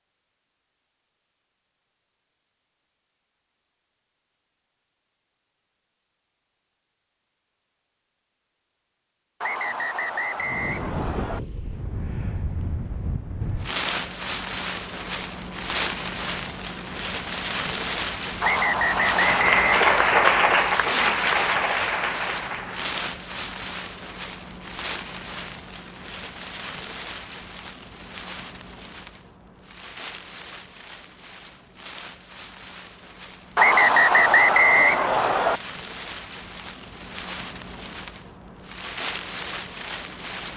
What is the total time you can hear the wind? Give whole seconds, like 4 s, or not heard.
30 s.